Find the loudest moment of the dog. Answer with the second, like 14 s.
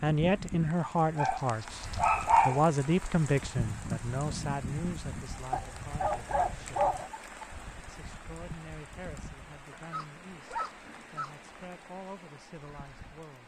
2 s.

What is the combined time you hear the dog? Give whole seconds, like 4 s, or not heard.
5 s.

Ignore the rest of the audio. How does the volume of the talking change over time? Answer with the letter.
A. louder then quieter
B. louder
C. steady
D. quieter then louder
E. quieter
E.